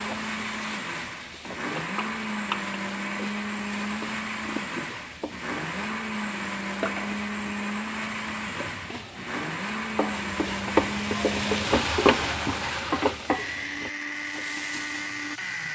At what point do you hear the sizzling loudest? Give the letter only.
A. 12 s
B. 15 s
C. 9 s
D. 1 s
A.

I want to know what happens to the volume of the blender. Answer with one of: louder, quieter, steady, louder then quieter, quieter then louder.
steady.